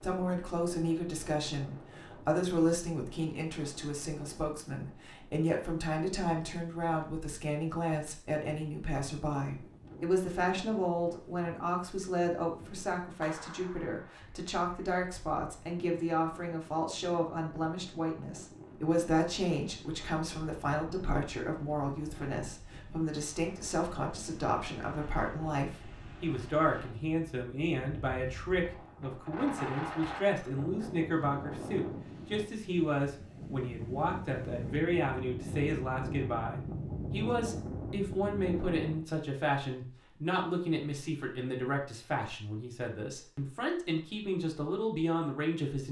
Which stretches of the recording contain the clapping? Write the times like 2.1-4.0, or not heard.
13.2-14.2.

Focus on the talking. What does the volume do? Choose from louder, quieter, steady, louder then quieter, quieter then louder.
steady.